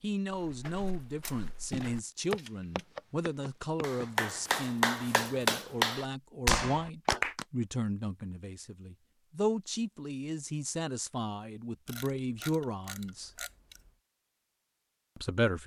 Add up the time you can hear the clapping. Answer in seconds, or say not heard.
4 s.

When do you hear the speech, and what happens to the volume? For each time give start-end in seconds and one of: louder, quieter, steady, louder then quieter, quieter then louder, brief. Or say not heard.
0.0-13.3 steady
15.2-15.6 brief.